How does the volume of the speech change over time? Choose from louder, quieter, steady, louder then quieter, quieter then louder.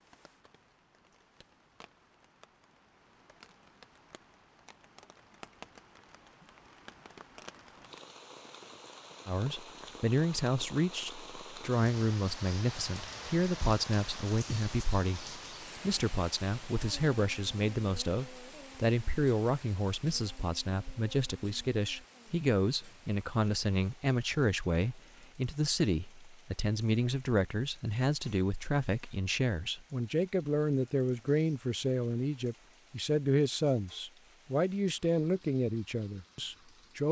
steady.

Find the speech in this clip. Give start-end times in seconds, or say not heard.
9.2-37.0.